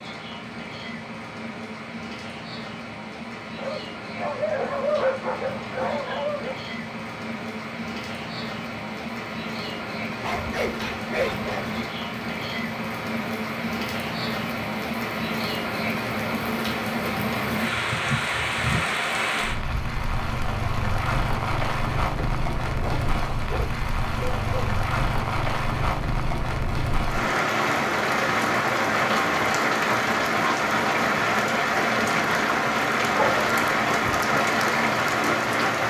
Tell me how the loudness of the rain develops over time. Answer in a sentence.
The loudness of the rain goes up.